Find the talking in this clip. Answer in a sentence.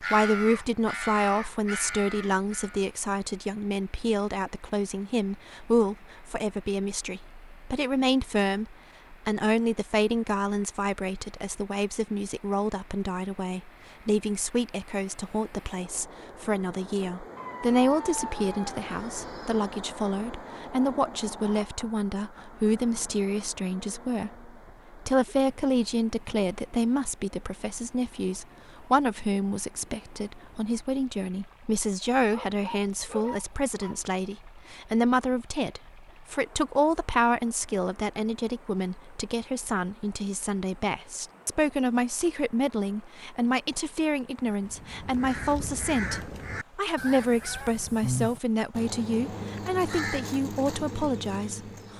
The talking can be heard from 0.0 to 51.9 s.